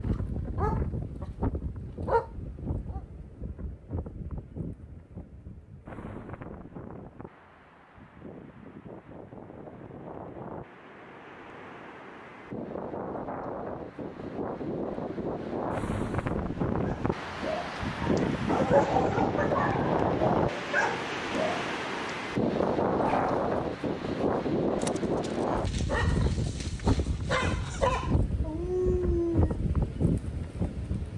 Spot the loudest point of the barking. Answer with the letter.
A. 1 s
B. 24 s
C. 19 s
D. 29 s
C.